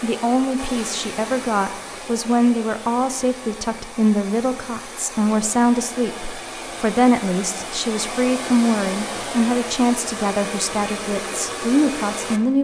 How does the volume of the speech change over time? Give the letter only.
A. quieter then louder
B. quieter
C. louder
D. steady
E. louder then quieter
D.